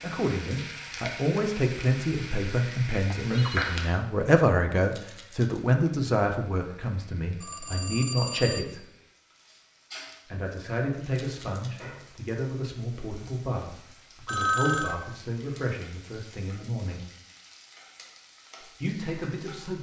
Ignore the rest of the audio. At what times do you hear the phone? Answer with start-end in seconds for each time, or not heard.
3.0-3.7, 7.4-8.7, 14.2-15.0.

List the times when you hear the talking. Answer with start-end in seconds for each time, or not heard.
0.0-8.8, 10.3-17.1, 18.6-19.7.